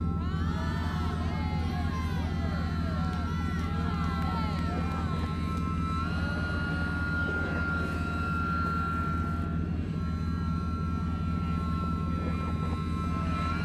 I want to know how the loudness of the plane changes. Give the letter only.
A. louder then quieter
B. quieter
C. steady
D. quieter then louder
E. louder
C.